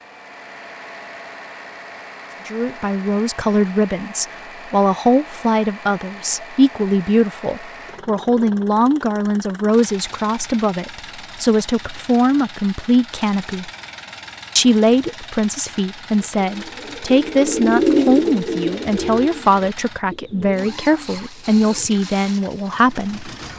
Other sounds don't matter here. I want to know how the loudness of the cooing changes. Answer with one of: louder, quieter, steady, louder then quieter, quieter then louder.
louder then quieter.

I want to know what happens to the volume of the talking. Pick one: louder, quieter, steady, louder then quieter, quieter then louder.
steady.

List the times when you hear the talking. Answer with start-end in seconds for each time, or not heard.
2.5-13.7, 14.6-23.3.